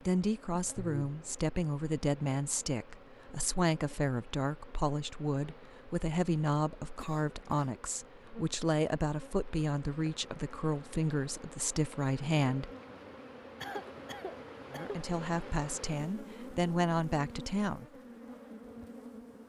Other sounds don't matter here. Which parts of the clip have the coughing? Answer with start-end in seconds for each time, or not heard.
0.8-1.4, 7.0-7.8, 13.6-15.0.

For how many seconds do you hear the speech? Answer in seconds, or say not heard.
16 s.